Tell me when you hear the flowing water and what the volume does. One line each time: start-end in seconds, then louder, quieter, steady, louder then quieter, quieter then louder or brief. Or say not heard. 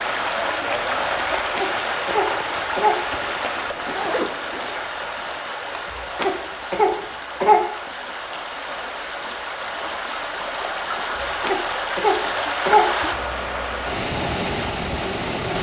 0.0-15.5 quieter then louder.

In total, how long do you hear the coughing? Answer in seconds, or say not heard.
5 s.